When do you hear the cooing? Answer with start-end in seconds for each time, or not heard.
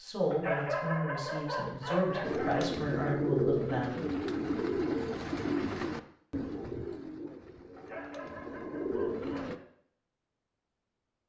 2.2-9.6.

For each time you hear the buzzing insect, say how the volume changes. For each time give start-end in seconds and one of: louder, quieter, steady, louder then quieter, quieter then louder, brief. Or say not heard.
not heard.